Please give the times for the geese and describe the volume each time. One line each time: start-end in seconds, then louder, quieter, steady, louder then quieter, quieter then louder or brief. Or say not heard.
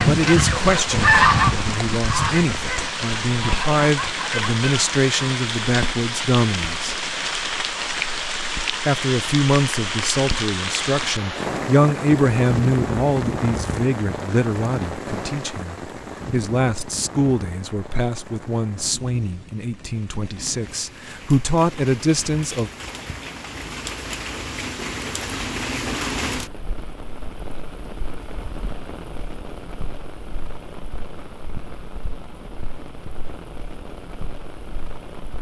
0.0-5.4 quieter.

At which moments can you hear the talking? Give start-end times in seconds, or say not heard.
0.0-7.0, 8.8-22.7.